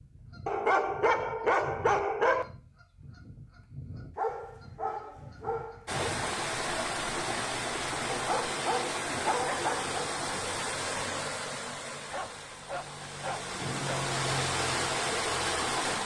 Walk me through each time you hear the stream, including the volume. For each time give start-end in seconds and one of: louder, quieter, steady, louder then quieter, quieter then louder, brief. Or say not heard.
5.8-16.0 quieter then louder.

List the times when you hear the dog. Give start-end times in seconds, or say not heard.
0.5-2.5, 4.2-6.0, 8.1-10.1, 12.1-14.1.